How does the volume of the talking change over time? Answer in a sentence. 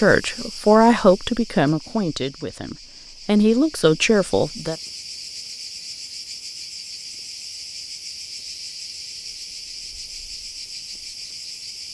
The loudness of the talking goes down, then up.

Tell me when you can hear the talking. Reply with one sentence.
You can hear the talking from 0.0 to 4.8 s.